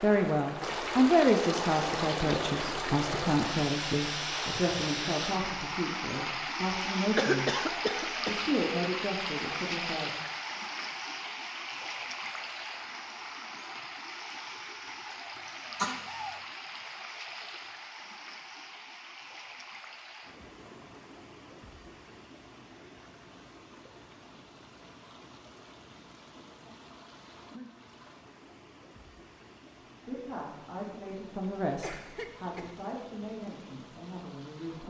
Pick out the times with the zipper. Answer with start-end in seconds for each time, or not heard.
not heard.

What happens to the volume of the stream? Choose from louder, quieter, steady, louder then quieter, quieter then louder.
quieter.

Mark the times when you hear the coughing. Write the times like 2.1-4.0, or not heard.
7.2-8.4, 15.3-16.4, 31.8-32.8.